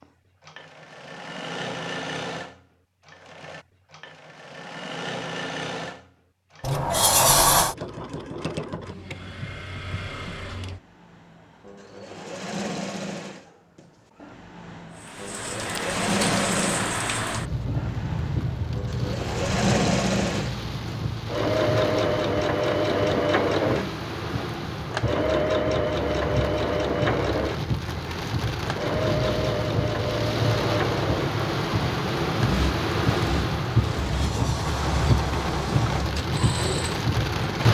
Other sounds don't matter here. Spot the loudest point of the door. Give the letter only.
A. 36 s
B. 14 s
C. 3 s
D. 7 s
D.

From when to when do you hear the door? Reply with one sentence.
You can hear the door from 6.6 to 7.8 s and from 34.0 to 36.1 s.